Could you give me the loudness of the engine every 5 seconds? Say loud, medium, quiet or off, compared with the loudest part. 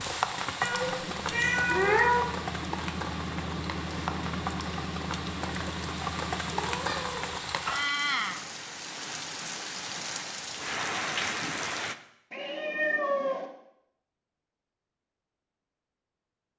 loud, loud, off, off.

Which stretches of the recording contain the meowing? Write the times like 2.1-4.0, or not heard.
0.6-2.4, 6.5-7.8, 12.3-13.5.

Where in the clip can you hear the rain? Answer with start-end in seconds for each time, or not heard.
0.0-11.9.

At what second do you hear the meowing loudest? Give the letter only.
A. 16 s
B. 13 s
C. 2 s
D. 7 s
C.